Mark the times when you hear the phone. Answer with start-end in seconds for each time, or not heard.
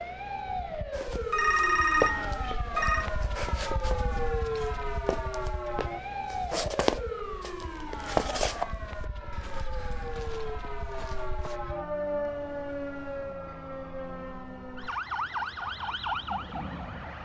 1.3-3.1.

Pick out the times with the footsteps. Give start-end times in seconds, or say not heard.
0.9-11.6.